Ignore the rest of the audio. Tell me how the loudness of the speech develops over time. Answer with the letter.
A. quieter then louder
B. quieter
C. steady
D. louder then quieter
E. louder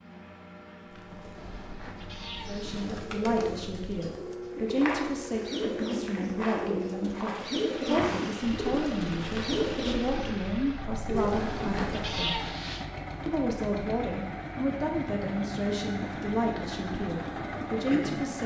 C.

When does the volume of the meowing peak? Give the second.
12 s.